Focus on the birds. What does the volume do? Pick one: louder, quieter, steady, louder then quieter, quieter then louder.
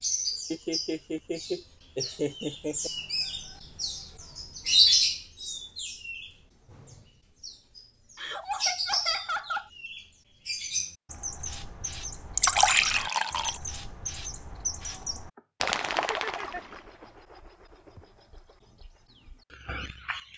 louder then quieter.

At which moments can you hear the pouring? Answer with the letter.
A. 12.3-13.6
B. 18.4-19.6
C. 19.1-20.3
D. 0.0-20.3
A.